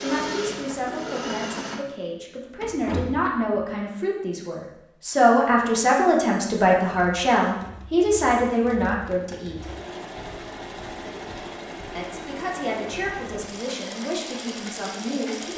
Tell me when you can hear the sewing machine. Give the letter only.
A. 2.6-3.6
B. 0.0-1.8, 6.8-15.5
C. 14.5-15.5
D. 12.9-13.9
B.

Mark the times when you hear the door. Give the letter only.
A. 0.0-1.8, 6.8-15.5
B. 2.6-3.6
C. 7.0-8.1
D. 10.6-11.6
B.